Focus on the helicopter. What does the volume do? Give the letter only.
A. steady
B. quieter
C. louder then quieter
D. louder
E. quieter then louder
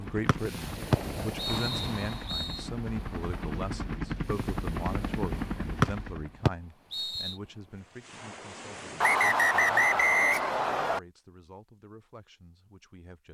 D.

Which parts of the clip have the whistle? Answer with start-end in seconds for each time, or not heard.
0.2-2.6, 5.8-7.3, 9.0-11.0.